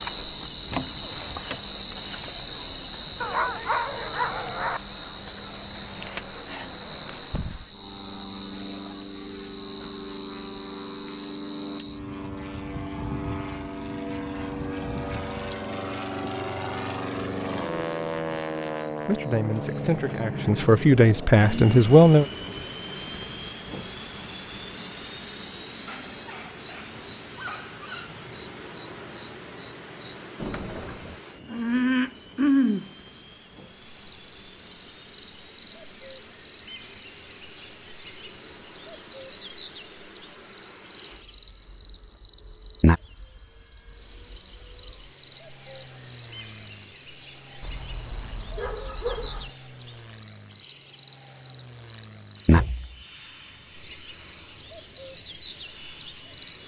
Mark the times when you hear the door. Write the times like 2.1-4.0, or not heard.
0.7-1.6, 30.4-31.2, 52.5-53.0.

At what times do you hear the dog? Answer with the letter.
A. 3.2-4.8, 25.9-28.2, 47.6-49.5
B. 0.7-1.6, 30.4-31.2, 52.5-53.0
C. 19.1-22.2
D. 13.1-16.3
A.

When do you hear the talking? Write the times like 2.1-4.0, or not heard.
19.1-22.2.